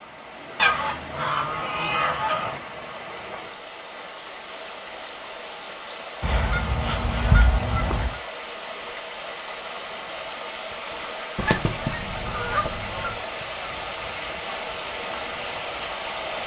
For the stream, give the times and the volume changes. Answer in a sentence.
The stream can be heard from 0.0 to 16.4 s, getting louder.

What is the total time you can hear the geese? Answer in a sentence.
The geese can be heard for 6 seconds in total.